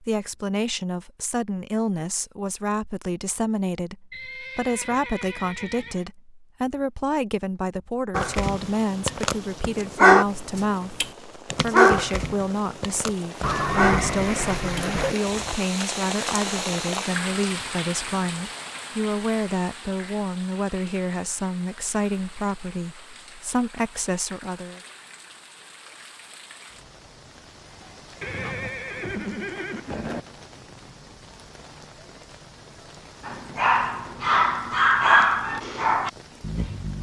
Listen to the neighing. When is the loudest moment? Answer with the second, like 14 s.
14 s.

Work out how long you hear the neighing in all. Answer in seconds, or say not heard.
6 s.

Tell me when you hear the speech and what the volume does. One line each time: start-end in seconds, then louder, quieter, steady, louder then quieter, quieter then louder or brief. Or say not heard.
0.0-24.8 steady.